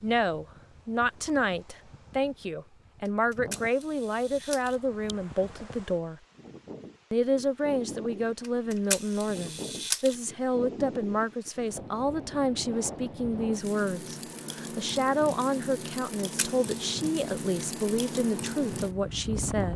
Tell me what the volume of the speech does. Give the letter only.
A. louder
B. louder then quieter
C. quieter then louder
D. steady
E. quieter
D.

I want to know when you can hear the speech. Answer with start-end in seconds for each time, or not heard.
0.0-6.2, 7.1-19.7.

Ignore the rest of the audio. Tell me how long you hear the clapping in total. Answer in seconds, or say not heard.
not heard.